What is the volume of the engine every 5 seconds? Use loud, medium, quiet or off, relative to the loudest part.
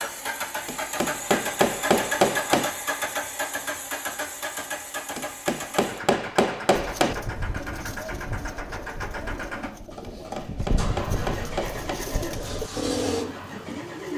loud, medium, medium.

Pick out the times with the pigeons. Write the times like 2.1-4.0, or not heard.
6.7-14.1.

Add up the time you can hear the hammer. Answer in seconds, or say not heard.
6 s.